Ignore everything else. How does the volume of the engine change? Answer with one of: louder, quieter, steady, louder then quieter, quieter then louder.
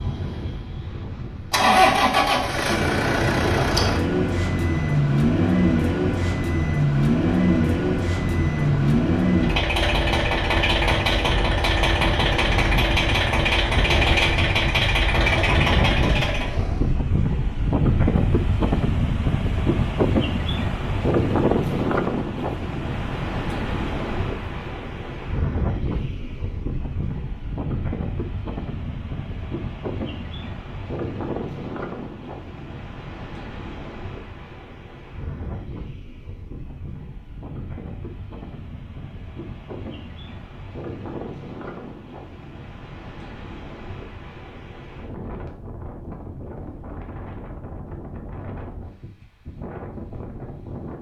steady.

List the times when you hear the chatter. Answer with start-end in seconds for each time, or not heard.
not heard.